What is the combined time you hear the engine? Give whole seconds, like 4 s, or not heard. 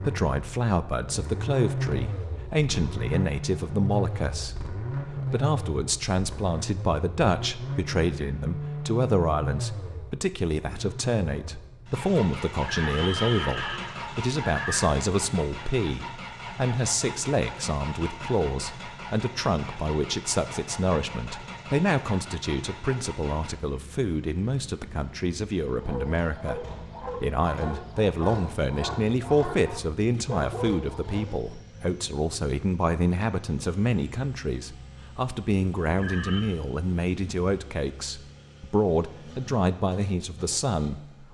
41 s.